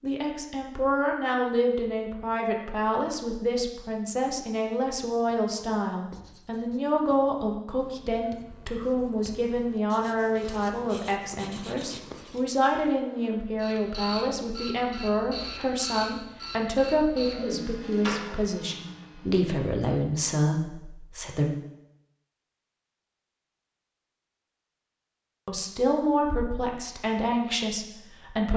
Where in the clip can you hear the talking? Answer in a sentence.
The talking can be heard from 0.0 to 21.6 s and from 25.4 to 28.5 s.